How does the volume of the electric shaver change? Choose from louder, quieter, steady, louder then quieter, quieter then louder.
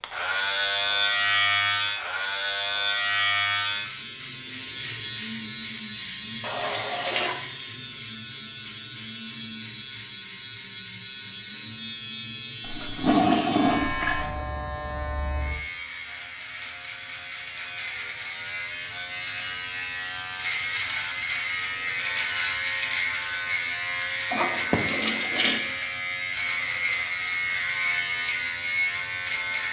quieter then louder.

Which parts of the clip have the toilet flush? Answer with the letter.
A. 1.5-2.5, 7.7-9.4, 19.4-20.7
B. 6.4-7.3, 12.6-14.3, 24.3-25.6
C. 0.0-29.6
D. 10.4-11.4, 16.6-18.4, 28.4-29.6
B.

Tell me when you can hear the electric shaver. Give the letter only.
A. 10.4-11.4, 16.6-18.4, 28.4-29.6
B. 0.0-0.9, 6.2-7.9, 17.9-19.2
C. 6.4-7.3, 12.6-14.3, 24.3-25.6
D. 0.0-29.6
D.